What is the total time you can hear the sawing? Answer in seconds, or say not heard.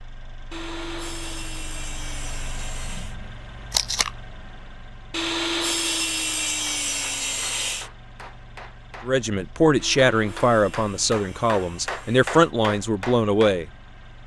8 s.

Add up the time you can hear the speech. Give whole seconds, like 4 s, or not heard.
5 s.